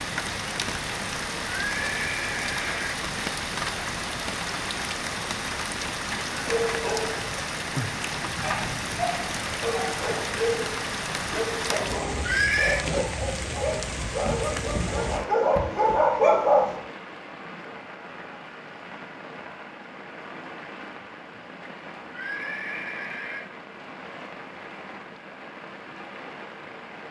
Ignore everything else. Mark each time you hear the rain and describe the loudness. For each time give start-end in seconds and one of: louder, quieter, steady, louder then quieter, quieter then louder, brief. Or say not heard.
0.0-27.0 quieter.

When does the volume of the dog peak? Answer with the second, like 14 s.
16 s.